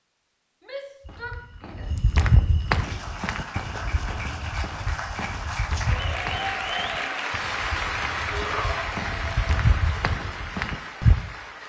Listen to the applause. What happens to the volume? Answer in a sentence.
The volume of the applause goes up, then down.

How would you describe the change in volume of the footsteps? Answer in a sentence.
The volume of the footsteps goes down, then up.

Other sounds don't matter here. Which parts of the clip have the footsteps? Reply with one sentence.
You can hear the footsteps from 1.1 to 11.2 s.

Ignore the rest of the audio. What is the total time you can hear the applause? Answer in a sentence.
The applause can be heard for 9 seconds in total.